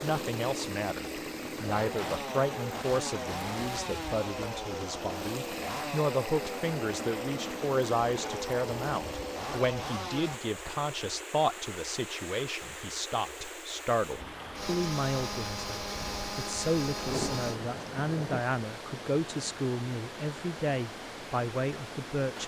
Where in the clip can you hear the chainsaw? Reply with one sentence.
You can hear the chainsaw from 0.0 to 10.4 s and from 14.6 to 17.6 s.